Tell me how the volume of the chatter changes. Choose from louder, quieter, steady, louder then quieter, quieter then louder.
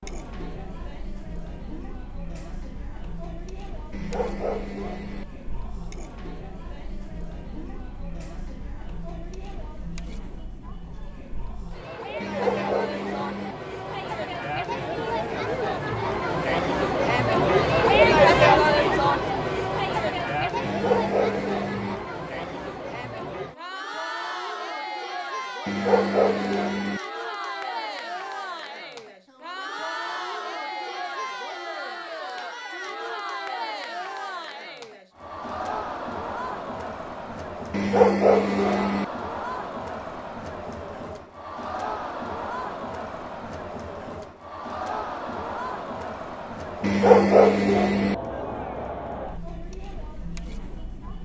louder then quieter.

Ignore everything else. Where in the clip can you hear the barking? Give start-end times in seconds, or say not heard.
3.9-5.2, 12.2-13.6, 20.6-21.9, 25.6-27.0, 37.7-39.0, 46.8-48.1.